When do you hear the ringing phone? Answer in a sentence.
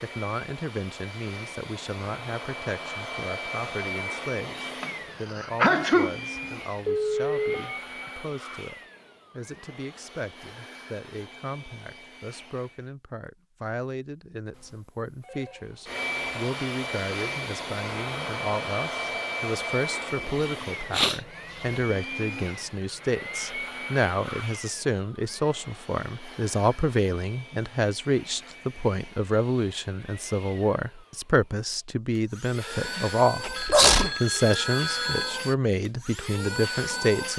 You can hear the ringing phone from 6.3 to 8.2 s, from 14.5 to 15.7 s and from 33.5 to 35.4 s.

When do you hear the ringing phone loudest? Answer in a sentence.
The volume of the ringing phone peaks at 7 seconds.